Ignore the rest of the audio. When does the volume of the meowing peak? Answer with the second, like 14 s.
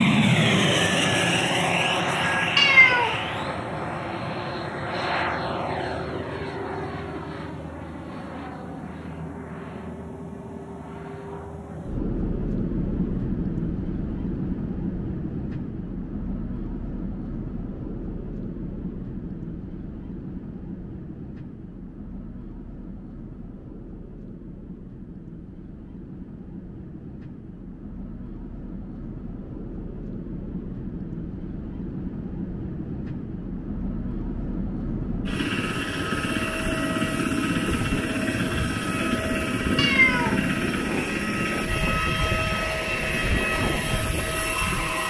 3 s.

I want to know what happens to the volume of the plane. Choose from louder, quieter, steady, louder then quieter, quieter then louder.
quieter then louder.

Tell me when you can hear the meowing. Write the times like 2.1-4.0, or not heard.
2.5-3.1, 39.8-41.6.